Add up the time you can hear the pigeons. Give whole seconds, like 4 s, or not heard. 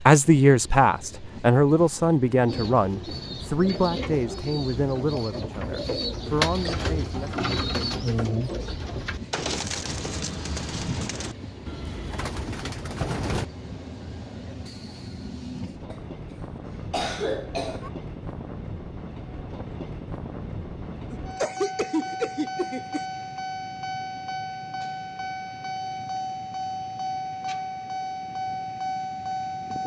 11 s.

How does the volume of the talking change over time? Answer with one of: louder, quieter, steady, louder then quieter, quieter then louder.
quieter.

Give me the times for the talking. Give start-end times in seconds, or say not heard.
0.1-8.1.